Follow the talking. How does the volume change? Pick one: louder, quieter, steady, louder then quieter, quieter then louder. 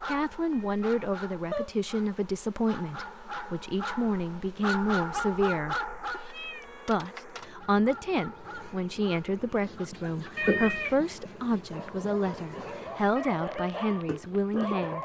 steady.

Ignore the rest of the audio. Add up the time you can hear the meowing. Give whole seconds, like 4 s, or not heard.
3 s.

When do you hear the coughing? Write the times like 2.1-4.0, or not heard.
not heard.